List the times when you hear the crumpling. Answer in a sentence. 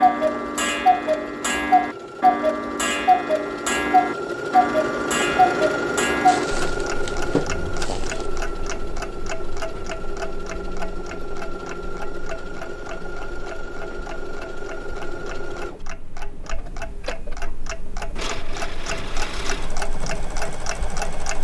The crumpling can be heard from 6.2 to 8.3 s.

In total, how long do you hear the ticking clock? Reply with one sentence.
You can hear the ticking clock for 21 seconds altogether.